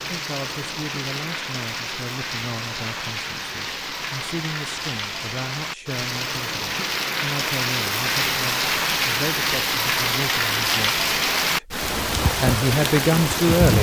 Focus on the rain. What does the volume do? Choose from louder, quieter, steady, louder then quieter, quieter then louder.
louder.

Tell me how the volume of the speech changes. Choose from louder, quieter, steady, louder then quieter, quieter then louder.
louder.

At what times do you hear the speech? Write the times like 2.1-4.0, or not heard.
0.0-13.7.